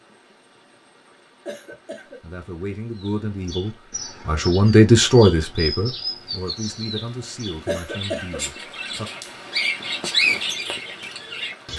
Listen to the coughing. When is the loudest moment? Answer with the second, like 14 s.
8 s.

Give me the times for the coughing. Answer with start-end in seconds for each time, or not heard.
1.4-2.2, 7.7-8.4.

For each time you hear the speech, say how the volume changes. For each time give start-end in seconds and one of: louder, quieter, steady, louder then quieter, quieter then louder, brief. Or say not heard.
2.2-9.1 louder then quieter.